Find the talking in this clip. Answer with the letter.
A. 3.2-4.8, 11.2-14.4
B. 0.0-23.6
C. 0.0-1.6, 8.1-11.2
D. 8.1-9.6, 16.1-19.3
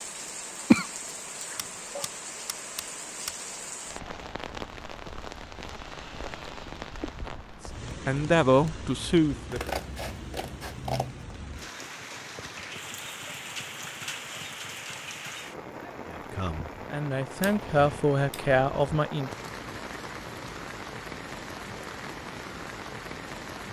D.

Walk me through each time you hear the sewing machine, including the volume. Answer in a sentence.
You can't hear the sewing machine here.